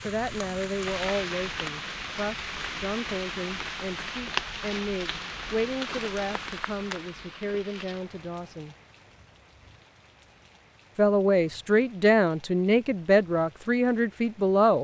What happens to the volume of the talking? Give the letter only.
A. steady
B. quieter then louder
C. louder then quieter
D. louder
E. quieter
D.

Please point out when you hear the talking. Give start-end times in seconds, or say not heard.
0.1-8.8, 10.9-14.8.